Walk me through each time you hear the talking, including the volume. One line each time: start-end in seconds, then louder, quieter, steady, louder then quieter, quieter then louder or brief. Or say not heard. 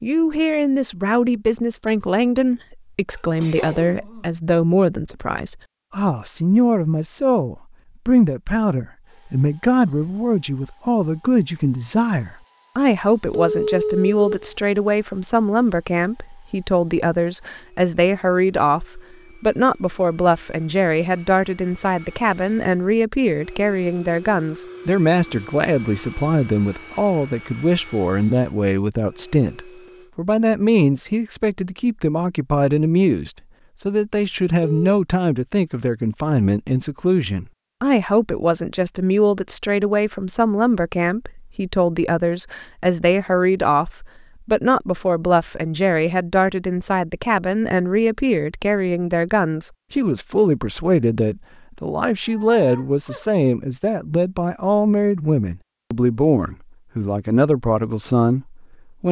0.0-59.0 steady.